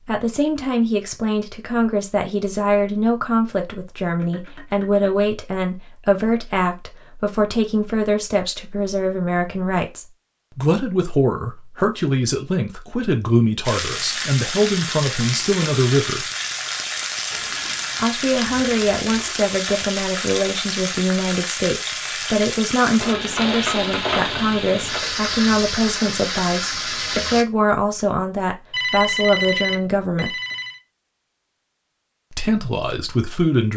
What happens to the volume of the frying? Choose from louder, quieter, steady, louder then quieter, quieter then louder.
steady.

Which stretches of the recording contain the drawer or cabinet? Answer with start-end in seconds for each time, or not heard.
not heard.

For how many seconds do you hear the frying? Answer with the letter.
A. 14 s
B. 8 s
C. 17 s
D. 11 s
A.